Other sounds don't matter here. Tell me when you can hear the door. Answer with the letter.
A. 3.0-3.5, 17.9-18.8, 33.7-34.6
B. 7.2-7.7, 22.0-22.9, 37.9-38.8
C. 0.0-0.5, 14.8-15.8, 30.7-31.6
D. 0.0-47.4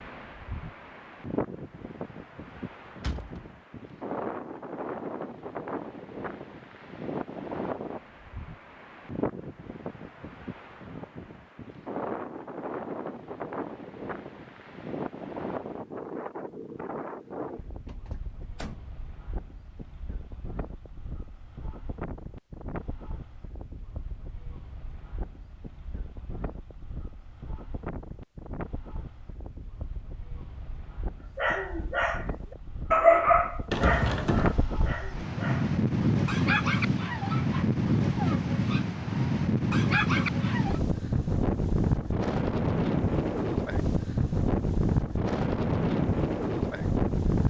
A.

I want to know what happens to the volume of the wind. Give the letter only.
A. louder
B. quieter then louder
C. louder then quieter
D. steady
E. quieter
B.